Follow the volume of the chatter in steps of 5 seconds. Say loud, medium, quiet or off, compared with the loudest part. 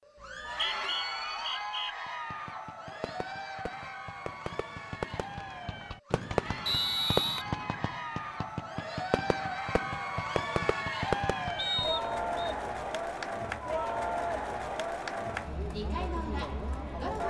medium, medium, loud, loud.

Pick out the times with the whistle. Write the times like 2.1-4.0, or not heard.
0.2-1.9, 6.7-7.5, 11.6-12.6.